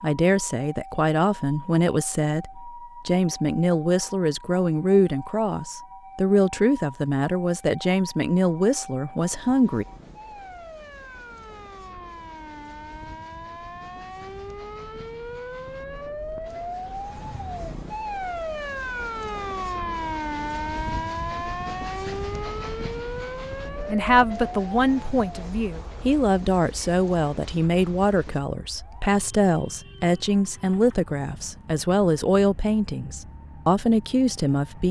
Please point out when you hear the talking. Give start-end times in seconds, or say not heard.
0.0-9.8, 23.9-34.8.